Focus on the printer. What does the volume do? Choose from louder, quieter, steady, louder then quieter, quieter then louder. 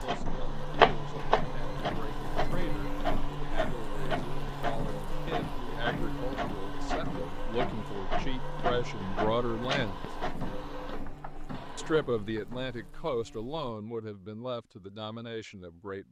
quieter.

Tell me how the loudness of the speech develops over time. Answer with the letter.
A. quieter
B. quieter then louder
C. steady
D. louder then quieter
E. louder
D.